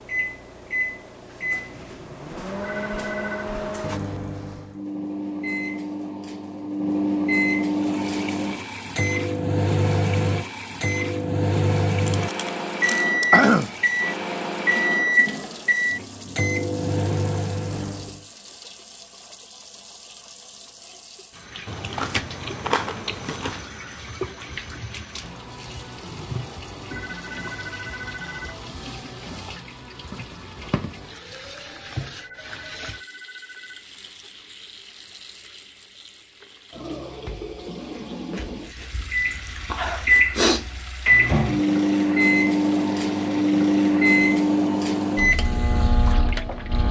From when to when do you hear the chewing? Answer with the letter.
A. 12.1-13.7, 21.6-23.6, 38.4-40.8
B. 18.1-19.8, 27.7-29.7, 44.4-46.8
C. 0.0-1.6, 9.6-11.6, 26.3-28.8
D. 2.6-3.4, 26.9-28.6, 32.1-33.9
A.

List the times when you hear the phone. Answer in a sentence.
You can hear the phone from 2.6 to 3.4 s, from 26.9 to 28.6 s and from 32.1 to 33.9 s.